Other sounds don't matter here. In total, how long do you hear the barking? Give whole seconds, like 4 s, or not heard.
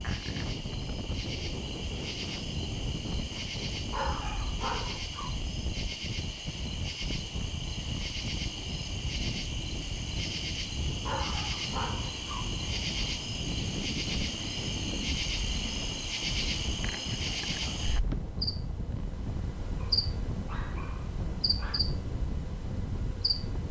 5 s.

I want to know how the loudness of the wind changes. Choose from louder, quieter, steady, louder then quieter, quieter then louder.
steady.